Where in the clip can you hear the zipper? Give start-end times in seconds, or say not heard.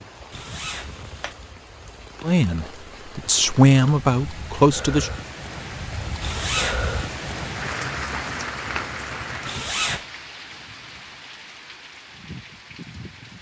0.3-1.4, 6.2-7.0, 9.4-10.1.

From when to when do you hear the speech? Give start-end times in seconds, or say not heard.
2.2-5.1.